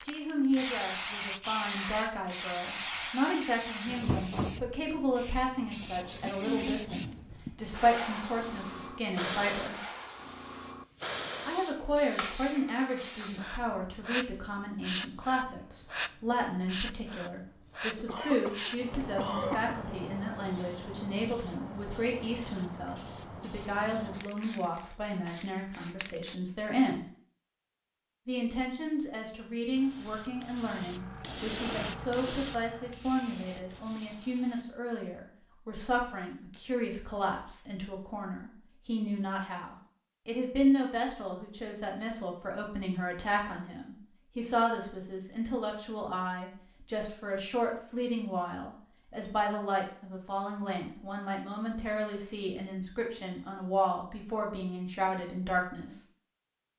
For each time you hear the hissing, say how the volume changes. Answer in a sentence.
The hissing can be heard from 0.0 to 26.4 s, getting quieter; and from 29.8 to 34.6 s, getting louder then quieter.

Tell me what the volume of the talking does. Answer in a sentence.
The loudness of the talking stays about the same.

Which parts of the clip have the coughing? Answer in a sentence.
The coughing can be heard from 17.9 to 19.8 s.